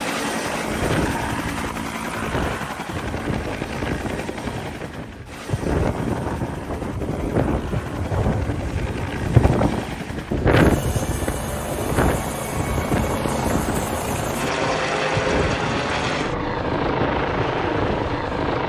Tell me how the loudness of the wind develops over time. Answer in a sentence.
The volume of the wind goes up, then down.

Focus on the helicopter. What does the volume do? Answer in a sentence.
The volume of the helicopter goes down, then up.